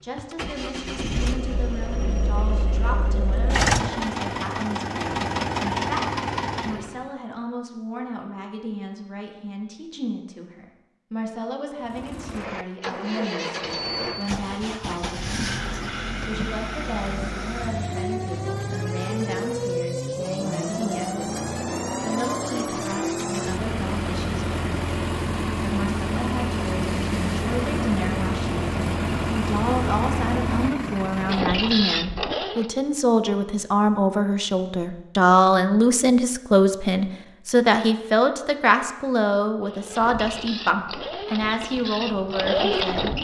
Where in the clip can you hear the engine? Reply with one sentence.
The engine can be heard from 0.1 to 7.1 s, from 11.8 to 32.7 s and from 39.6 to 43.1 s.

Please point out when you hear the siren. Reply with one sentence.
The siren can't be heard in this clip.